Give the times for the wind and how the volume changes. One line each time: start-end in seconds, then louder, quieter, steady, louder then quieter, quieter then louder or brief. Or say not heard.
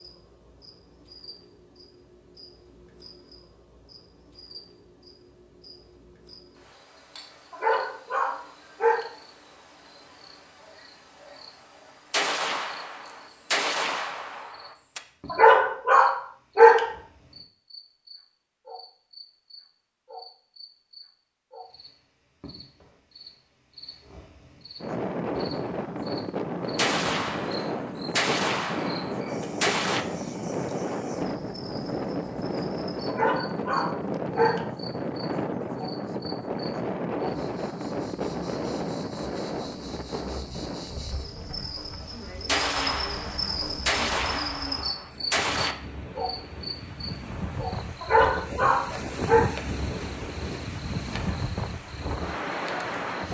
24.8-53.2 quieter then louder.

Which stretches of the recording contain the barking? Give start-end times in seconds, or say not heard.
7.5-9.1, 15.2-16.9, 33.0-34.6, 48.0-49.5.